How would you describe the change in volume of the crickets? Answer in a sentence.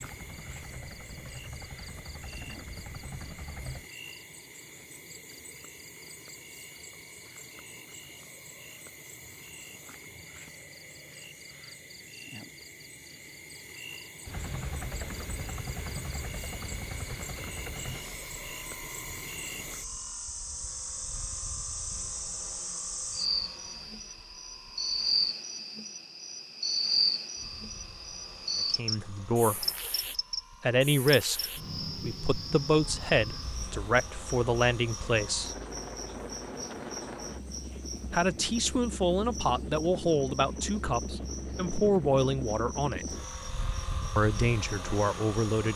The volume of the crickets goes up, then down.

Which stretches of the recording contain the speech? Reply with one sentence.
The speech can be heard from 28.8 to 29.6 s, from 30.6 to 35.5 s, from 38.1 to 43.0 s and from 44.1 to 45.7 s.